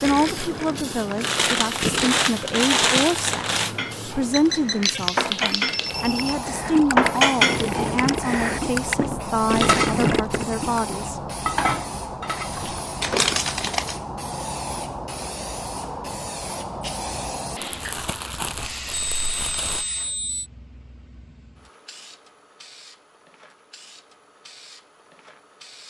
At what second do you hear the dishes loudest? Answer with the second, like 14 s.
7 s.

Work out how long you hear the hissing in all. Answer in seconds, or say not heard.
26 s.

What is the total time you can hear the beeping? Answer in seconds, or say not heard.
4 s.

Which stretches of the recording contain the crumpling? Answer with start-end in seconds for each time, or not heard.
1.2-3.7, 13.0-14.0, 17.6-19.9.